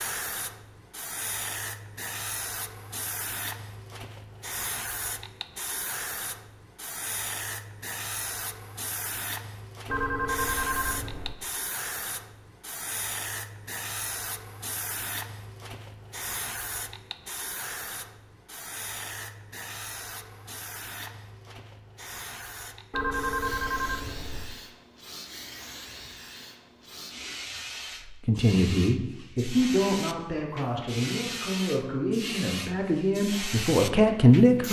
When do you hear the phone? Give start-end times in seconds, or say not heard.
9.8-11.3, 22.9-24.6.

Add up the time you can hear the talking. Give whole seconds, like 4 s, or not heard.
6 s.